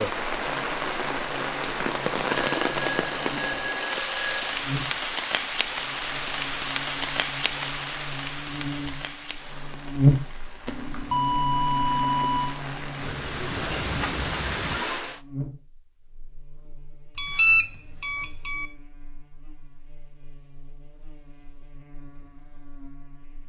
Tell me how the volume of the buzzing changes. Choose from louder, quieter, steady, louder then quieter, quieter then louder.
louder then quieter.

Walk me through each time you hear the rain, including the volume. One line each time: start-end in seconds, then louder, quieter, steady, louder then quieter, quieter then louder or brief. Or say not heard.
0.0-15.2 quieter then louder.